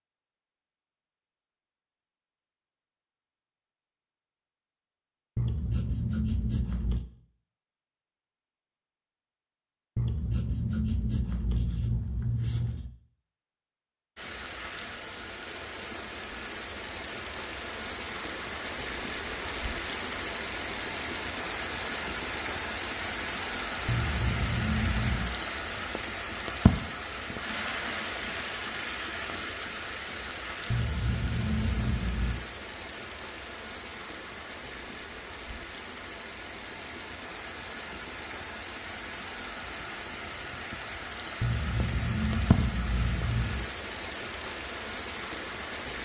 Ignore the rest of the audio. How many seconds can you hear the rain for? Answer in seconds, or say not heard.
32 s.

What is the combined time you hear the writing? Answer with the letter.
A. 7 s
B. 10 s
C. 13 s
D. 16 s
B.